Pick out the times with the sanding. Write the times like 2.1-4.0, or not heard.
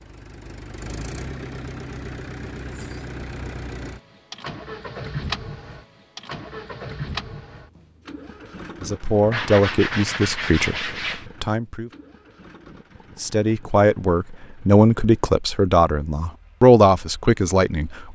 9.3-11.2.